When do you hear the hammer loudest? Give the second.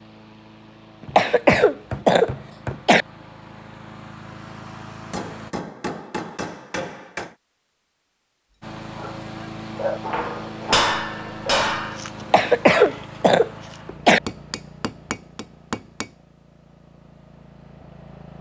11 s.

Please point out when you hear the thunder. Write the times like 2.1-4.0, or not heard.
not heard.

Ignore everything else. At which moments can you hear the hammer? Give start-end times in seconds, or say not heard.
1.1-2.9, 5.1-7.3, 10.0-12.0, 14.2-16.1.